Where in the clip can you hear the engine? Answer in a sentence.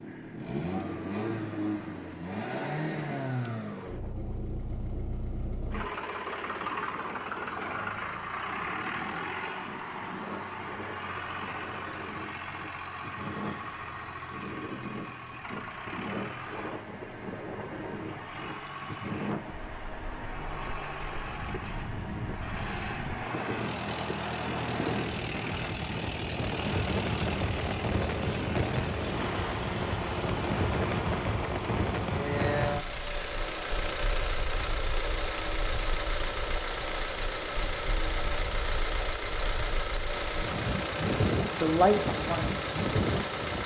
You can hear the engine from 0.0 to 43.6 s.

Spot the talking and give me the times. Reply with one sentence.
The talking can be heard from 41.5 to 42.6 s.